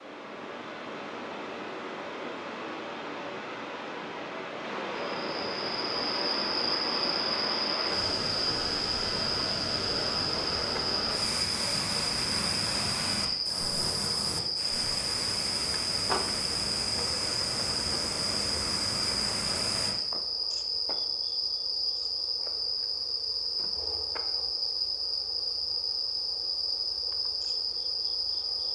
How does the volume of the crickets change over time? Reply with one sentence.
The loudness of the crickets stays about the same.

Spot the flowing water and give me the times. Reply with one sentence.
You can hear the flowing water from 0.0 to 19.9 s.